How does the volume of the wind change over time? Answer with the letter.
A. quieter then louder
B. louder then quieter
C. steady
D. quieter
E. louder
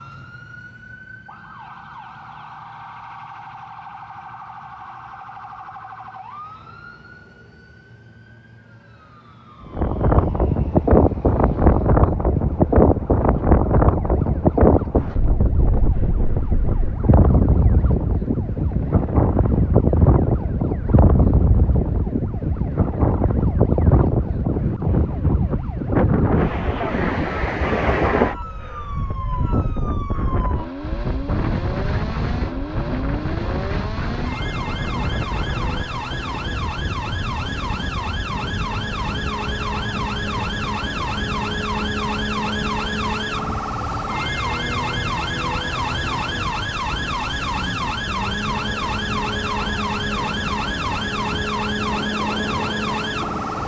D.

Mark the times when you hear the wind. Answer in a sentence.
The wind can be heard from 9.7 to 53.6 s.